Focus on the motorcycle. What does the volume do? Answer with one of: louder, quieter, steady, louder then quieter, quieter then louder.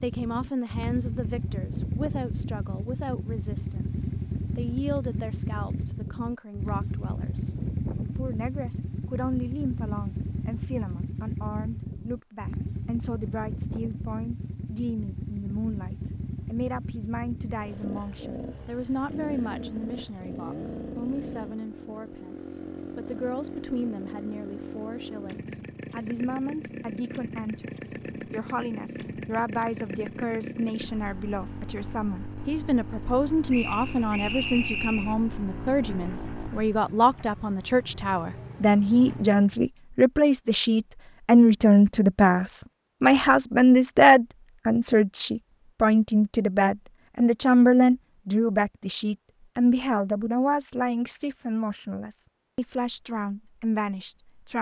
quieter.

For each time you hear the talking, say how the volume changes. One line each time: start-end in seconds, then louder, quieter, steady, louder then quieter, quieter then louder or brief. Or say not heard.
0.0-54.5 louder.